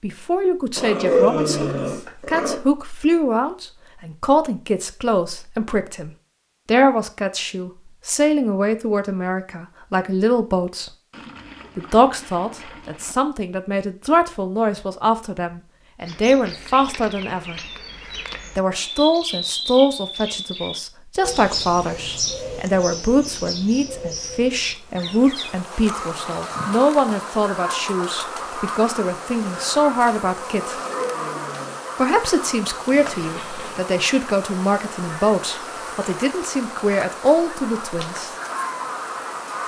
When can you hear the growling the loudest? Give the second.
1 s.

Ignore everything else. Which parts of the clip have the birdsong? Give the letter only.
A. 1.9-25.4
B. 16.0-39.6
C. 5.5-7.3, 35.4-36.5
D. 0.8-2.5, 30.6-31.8
B.